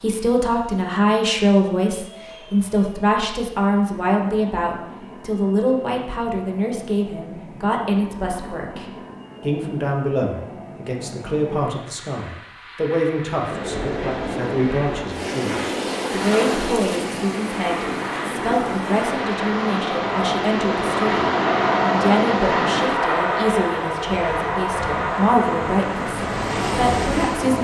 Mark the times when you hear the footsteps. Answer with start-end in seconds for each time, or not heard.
not heard.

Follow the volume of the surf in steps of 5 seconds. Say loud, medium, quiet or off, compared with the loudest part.
off, off, loud, loud, loud, loud.